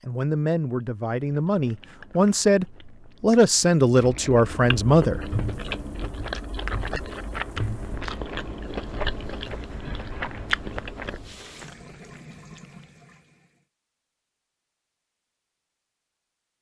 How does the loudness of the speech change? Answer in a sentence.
The volume of the speech goes up.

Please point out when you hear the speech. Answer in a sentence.
You can hear the speech from 0.1 to 5.3 s.